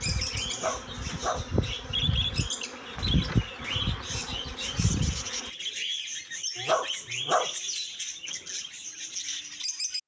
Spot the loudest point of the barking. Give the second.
7 s.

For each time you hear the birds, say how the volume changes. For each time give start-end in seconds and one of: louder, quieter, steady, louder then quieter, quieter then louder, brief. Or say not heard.
0.0-10.0 steady.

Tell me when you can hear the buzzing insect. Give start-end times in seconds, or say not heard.
0.0-5.5.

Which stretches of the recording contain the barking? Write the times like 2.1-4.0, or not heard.
0.5-1.4, 6.5-7.5.